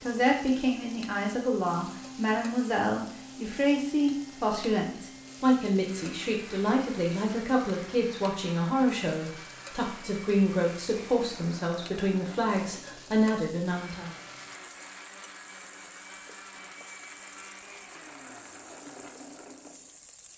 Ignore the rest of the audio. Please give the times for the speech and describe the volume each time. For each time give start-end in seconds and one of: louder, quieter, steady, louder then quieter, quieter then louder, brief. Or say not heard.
0.0-14.1 steady.